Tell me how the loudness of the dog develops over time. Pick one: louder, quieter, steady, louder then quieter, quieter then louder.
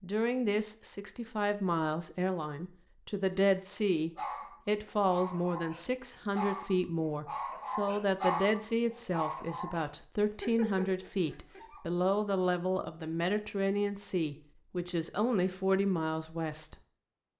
louder then quieter.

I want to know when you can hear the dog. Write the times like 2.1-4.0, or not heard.
4.2-11.8.